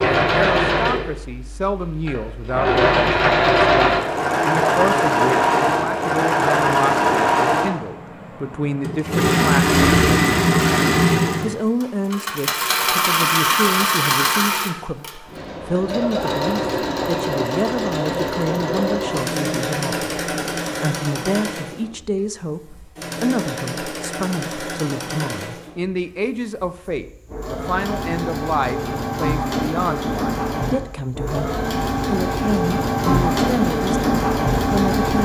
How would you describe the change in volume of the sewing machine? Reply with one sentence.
The volume of the sewing machine goes down, then up.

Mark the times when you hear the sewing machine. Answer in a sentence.
The sewing machine can be heard from 0.0 to 35.2 s.